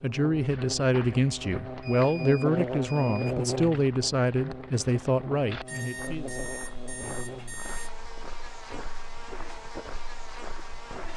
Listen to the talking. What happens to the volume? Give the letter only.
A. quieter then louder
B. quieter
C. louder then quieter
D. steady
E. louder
D.